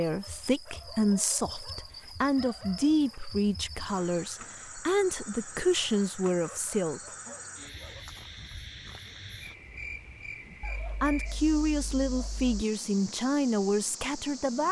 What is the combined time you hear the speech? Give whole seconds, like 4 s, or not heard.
11 s.